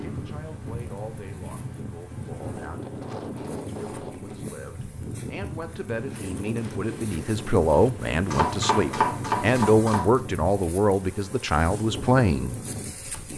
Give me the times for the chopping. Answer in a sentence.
You can hear the chopping from 8.2 to 10.2 s.